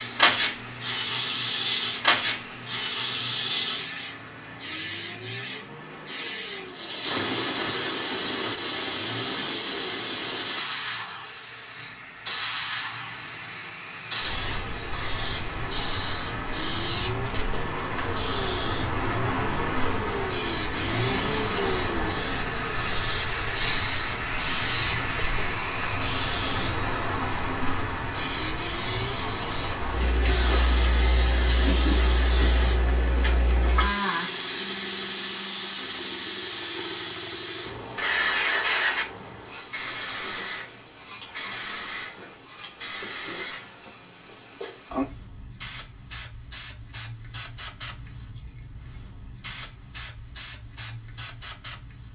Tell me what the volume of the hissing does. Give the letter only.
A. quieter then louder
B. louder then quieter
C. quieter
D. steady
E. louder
C.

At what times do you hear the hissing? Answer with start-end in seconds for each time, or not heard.
0.0-52.1.